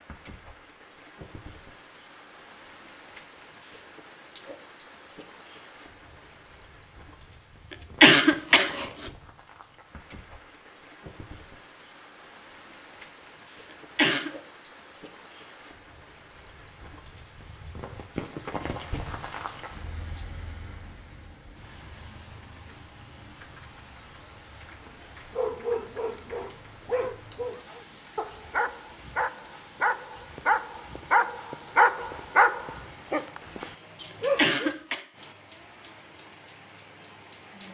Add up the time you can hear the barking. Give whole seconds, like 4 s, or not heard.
10 s.